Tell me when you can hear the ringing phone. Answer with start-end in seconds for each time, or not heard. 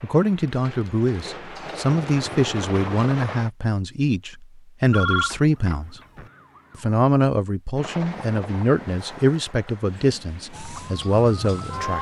4.9-6.3.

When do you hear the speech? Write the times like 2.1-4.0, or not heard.
0.0-6.0, 6.8-11.9.